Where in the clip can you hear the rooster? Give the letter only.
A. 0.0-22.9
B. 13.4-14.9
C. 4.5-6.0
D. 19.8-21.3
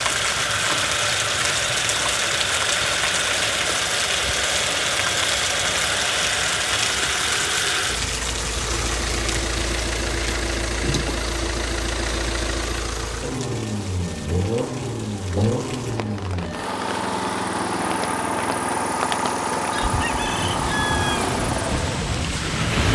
D.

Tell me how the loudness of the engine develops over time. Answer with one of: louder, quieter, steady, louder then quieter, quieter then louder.
steady.